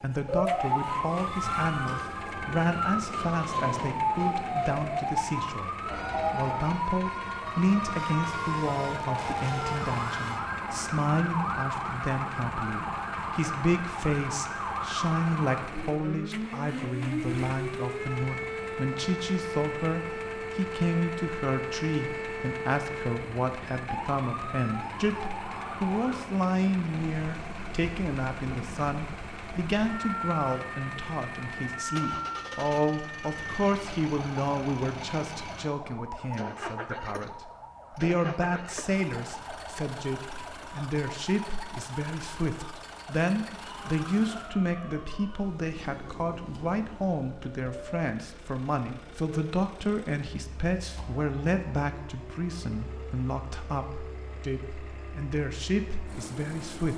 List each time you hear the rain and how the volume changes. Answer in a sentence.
The rain can't be heard in this clip.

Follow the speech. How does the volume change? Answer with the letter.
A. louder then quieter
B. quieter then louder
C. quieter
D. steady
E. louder
D.